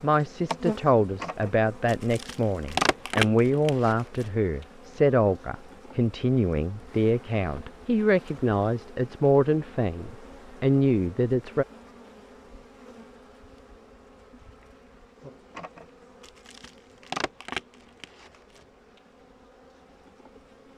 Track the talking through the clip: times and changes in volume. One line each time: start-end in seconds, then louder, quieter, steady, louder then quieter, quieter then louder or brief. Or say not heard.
0.0-11.7 steady.